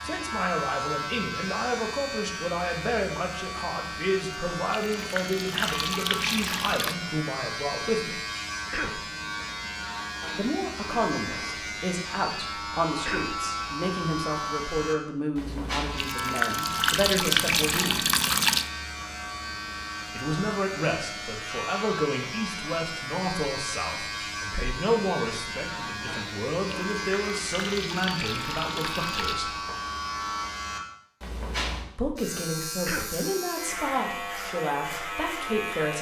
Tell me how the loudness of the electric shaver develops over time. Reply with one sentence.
The loudness of the electric shaver stays about the same.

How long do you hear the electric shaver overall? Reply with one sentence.
The electric shaver can be heard for 36 seconds in total.